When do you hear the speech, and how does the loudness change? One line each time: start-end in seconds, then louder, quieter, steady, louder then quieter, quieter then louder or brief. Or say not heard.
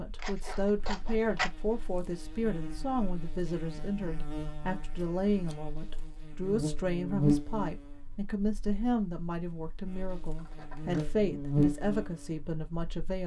0.0-13.2 steady.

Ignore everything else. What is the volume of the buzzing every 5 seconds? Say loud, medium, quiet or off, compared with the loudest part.
quiet, loud, loud.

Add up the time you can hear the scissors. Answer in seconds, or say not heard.
3 s.